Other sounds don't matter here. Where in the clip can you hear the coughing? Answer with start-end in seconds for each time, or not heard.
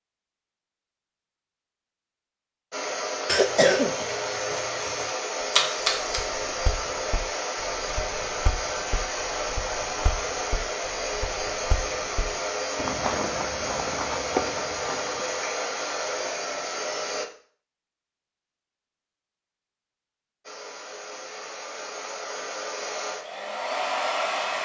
3.2-5.1.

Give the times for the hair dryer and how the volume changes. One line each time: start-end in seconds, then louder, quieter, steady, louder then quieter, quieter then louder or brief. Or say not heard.
2.7-17.2 steady
20.4-24.6 louder.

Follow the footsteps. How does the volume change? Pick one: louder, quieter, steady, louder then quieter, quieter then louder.
louder.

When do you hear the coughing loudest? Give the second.
4 s.